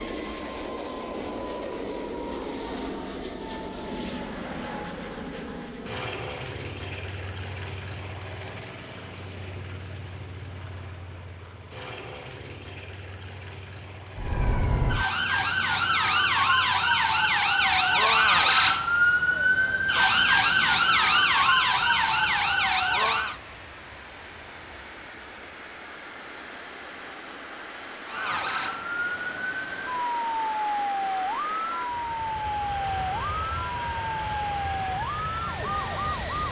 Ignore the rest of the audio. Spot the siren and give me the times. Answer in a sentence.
The siren can be heard from 14.2 to 23.4 s and from 28.1 to 36.4 s.